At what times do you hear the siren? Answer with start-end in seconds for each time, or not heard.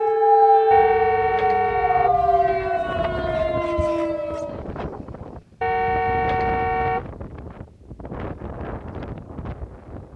0.0-4.6.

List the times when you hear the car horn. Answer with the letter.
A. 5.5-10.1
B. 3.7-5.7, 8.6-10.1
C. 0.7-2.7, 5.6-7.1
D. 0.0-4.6
C.